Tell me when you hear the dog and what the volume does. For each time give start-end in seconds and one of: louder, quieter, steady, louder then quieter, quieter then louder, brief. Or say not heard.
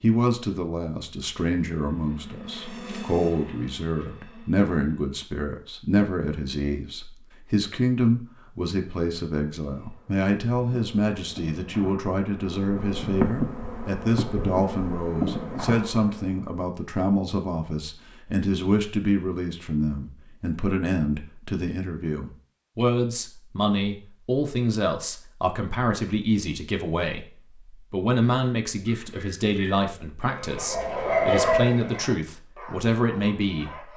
28.8-33.9 louder then quieter.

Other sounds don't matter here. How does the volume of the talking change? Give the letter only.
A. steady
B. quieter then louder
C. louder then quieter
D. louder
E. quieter
A.